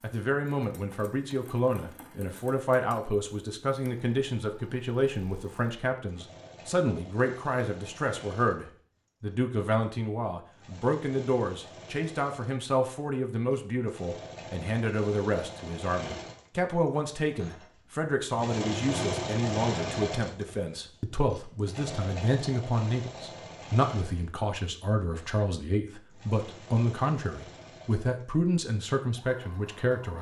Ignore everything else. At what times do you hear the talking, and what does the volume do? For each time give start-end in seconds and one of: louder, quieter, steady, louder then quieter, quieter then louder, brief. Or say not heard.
0.0-30.1 steady.